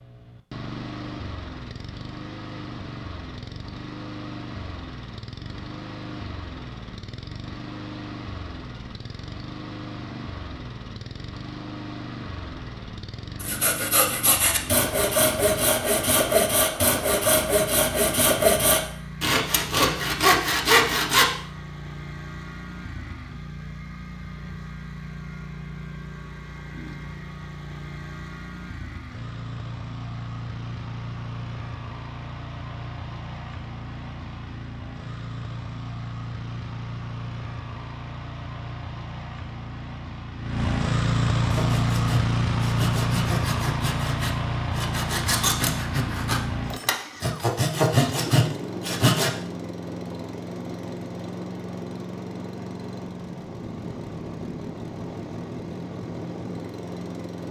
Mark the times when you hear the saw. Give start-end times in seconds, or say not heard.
13.4-21.2, 41.5-49.3.